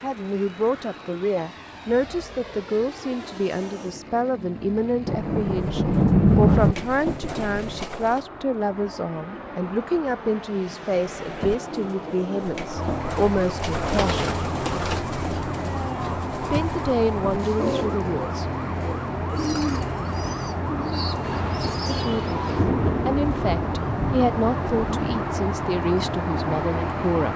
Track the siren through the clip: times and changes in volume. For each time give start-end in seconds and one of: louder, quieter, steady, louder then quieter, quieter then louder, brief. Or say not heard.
12.8-27.3 steady.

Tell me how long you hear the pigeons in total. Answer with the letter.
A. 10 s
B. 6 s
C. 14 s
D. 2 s
C.